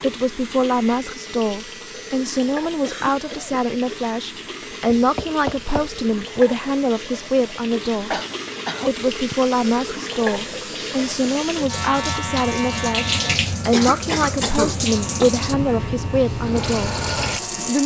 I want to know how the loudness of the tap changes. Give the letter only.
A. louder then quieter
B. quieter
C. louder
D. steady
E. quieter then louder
C.